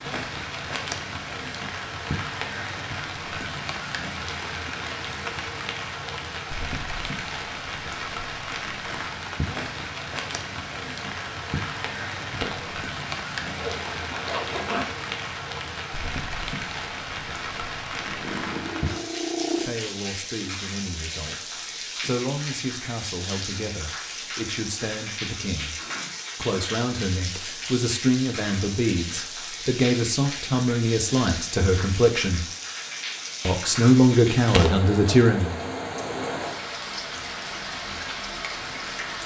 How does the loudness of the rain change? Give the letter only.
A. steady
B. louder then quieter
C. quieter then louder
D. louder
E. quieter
A.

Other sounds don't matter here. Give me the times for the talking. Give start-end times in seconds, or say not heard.
18.9-25.8, 26.4-32.5, 33.5-35.6.